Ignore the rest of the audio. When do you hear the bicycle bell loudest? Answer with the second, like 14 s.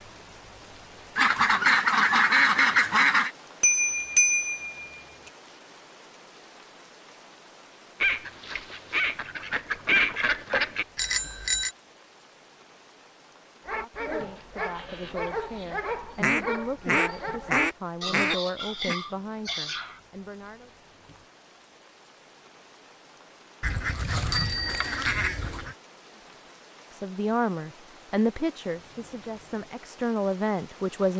4 s.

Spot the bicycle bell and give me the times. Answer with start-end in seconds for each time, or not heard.
3.6-5.0, 10.9-11.7, 24.3-24.9.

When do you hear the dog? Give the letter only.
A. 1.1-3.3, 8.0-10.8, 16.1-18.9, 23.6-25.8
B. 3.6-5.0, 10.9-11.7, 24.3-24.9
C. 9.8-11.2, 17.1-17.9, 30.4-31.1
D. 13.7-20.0
D.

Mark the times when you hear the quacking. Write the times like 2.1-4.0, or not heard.
1.1-3.3, 8.0-10.8, 16.1-18.9, 23.6-25.8.